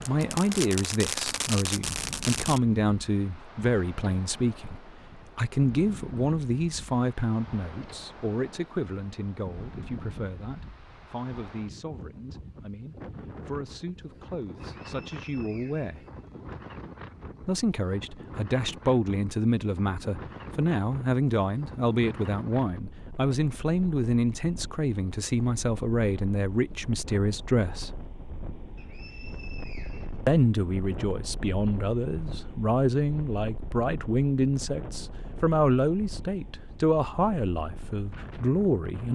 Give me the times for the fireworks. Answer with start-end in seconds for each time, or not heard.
0.0-2.6.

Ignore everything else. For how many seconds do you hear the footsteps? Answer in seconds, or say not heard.
not heard.